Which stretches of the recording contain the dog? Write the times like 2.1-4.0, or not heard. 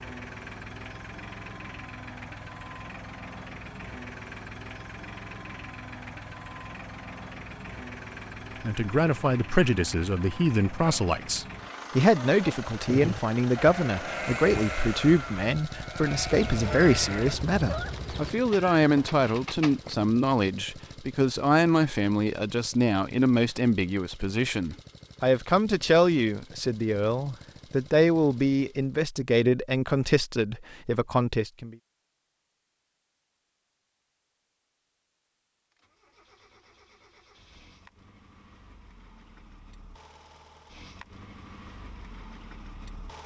not heard.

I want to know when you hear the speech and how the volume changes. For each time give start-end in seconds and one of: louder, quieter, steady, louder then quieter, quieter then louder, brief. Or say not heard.
8.6-31.8 steady.